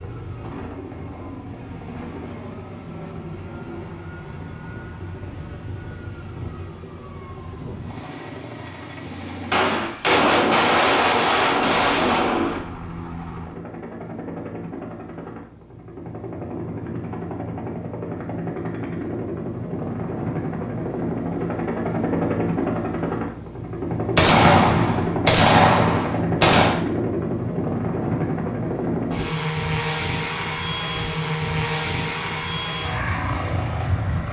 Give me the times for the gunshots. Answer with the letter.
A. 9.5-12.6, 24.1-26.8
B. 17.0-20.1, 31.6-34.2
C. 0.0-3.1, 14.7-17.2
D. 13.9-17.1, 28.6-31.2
A.